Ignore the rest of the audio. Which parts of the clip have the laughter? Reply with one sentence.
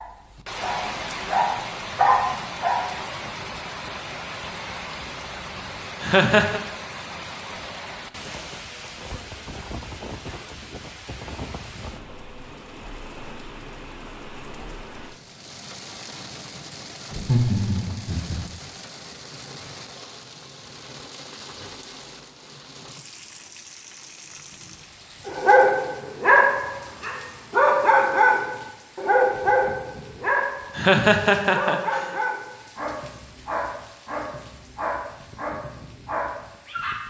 You can hear the laughter from 6.0 to 6.6 s, from 17.1 to 18.4 s and from 30.8 to 32.0 s.